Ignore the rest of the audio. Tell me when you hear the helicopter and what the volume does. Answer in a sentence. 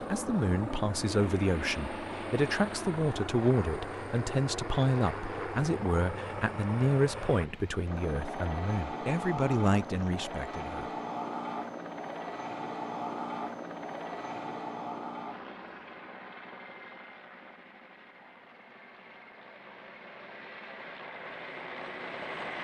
The helicopter can be heard from 0.0 to 22.5 s, getting quieter.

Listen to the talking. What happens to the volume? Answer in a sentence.
The loudness of the talking stays about the same.